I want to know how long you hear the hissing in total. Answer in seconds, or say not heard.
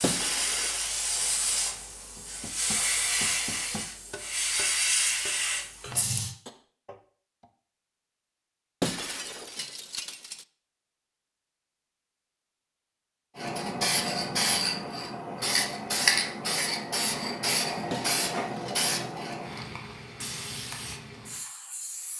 15 s.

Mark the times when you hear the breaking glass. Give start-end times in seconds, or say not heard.
0.0-0.8, 8.8-10.4, 17.9-18.9.